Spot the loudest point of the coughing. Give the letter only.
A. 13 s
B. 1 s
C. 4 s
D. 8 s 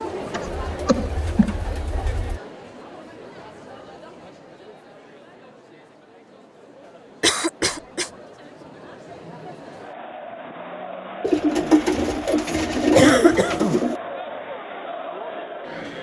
A.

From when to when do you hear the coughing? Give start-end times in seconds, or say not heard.
0.2-1.6, 7.2-8.1, 12.9-13.8.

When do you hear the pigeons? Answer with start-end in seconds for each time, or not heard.
0.0-2.4, 11.2-13.9.